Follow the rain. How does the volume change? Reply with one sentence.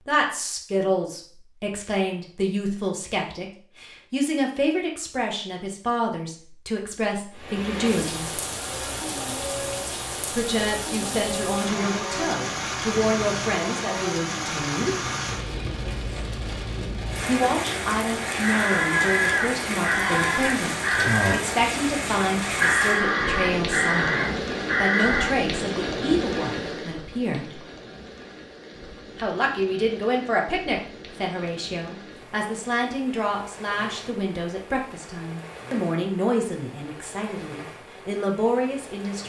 The volume of the rain goes down.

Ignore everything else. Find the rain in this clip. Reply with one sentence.
You can hear the rain from 7.3 to 39.2 s.